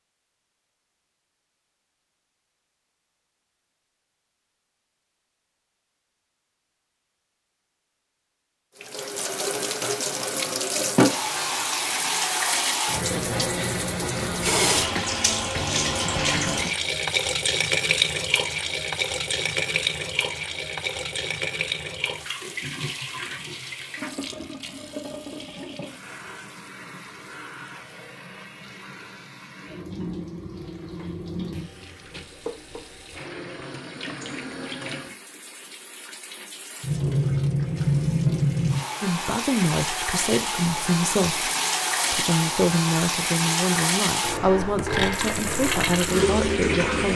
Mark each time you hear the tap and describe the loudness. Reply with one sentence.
The tap can be heard from 8.8 to 47.1 s, getting quieter then louder.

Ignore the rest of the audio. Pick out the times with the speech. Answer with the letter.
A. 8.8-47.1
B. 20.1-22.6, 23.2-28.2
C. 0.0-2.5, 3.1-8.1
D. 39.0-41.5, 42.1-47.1
D.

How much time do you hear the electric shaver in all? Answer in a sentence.
You can't hear the electric shaver here.